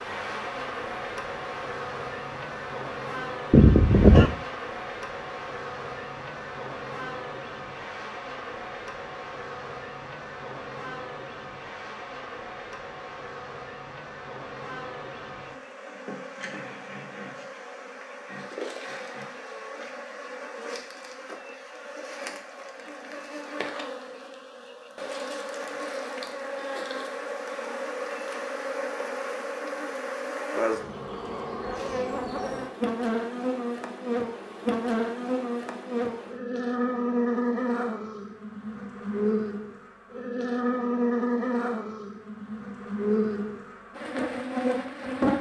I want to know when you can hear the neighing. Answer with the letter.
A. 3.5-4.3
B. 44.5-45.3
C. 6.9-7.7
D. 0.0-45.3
A.